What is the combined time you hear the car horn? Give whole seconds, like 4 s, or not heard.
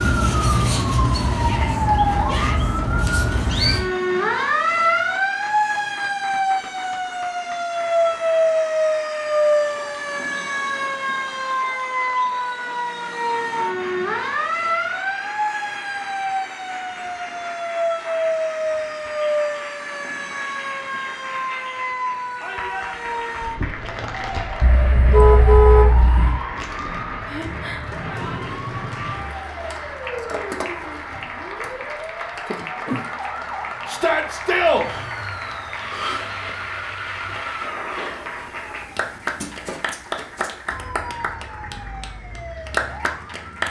2 s.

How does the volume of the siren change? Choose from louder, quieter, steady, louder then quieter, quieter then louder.
quieter.